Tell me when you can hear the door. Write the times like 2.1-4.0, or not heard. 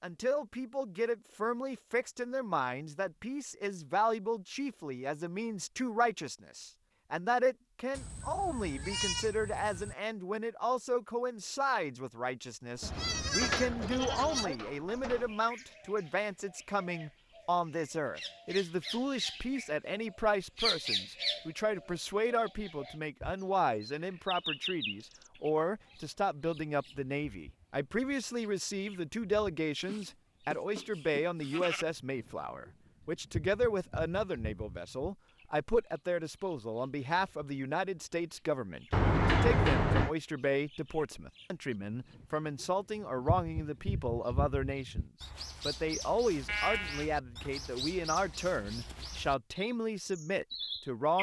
12.8-15.3, 38.9-40.1.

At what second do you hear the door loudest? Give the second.
39 s.